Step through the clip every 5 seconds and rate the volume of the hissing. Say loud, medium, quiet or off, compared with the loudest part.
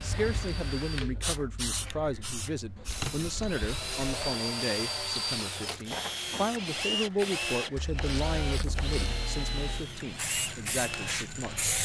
medium, medium, loud.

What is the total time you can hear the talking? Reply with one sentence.
The talking can be heard for 12 seconds in total.